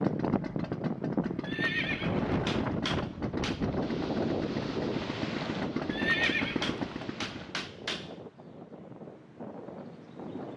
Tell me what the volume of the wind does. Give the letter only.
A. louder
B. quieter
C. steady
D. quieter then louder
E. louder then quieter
B.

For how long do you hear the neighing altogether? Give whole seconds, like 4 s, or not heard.
2 s.